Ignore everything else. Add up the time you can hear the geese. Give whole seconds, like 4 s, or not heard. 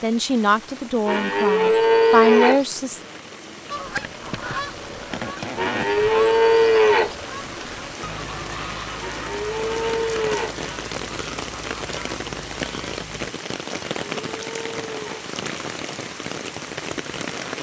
10 s.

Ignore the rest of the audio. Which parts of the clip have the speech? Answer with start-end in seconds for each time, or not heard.
0.0-3.0.